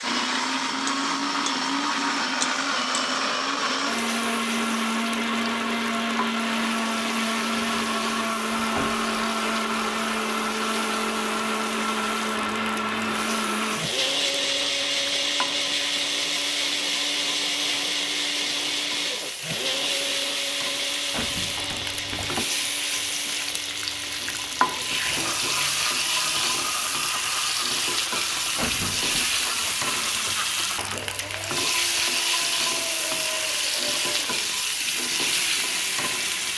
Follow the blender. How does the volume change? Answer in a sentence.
The loudness of the blender goes down.